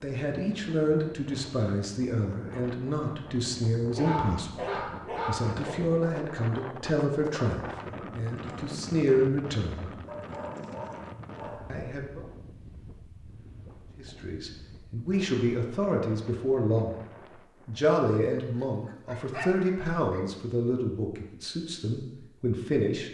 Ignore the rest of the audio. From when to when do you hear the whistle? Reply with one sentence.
The whistle can't be heard in this clip.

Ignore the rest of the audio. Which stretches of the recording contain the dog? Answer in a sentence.
The dog can be heard from 4.0 to 5.8 s, from 10.1 to 11.8 s and from 17.9 to 20.2 s.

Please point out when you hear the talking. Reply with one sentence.
The talking can be heard from 0.0 to 9.9 s, from 11.7 to 12.2 s, from 13.9 to 17.1 s and from 17.6 to 23.0 s.